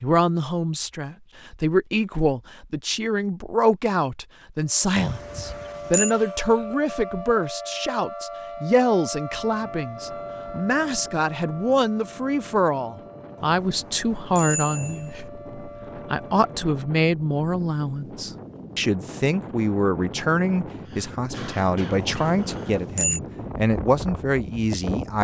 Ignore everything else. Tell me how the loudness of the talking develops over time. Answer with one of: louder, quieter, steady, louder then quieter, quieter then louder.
steady.